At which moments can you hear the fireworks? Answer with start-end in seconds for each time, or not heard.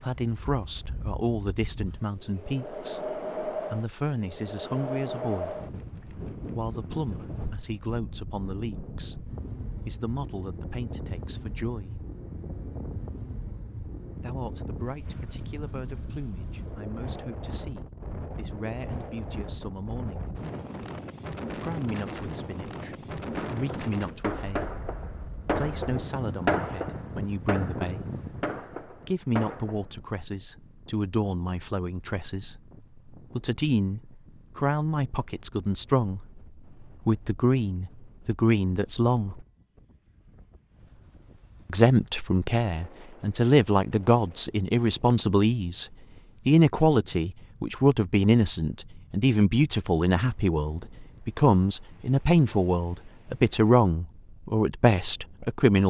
23.4-29.9.